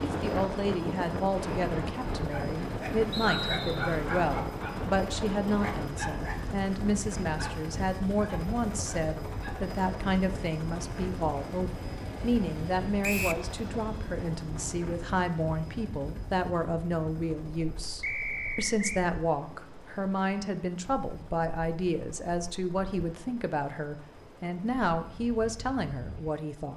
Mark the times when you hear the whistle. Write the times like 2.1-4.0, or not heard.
3.1-4.0, 13.0-13.4, 18.0-19.1.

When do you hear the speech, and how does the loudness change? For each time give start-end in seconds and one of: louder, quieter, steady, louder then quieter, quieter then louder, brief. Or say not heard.
0.0-26.7 steady.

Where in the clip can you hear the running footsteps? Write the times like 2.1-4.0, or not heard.
not heard.